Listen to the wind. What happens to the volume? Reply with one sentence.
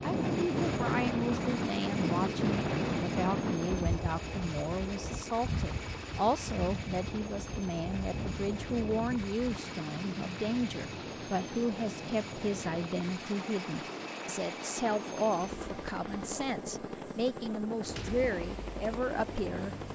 The volume of the wind goes down.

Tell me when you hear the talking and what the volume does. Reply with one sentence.
You can hear the talking from 0.0 to 19.8 s, at a steady volume.